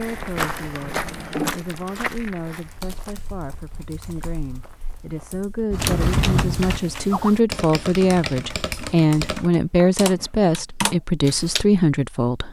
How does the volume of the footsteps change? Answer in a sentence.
The loudness of the footsteps goes down.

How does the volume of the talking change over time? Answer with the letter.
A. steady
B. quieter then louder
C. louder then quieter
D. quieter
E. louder
E.